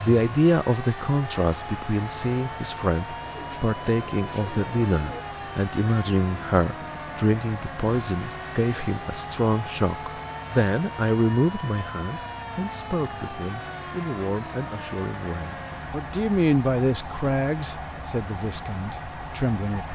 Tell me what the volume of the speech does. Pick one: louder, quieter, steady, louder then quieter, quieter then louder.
quieter then louder.